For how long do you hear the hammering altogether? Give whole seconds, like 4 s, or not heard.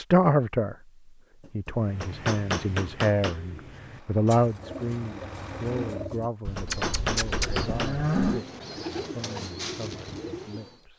4 s.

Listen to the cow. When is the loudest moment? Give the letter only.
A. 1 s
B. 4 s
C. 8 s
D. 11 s
C.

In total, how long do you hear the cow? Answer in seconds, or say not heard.
2 s.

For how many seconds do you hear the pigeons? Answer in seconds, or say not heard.
9 s.